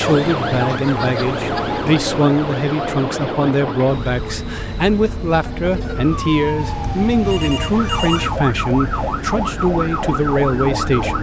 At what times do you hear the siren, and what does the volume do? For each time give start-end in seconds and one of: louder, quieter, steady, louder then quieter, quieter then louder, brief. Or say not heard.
0.0-11.1 quieter then louder.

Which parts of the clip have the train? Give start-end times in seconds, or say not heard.
0.0-11.1.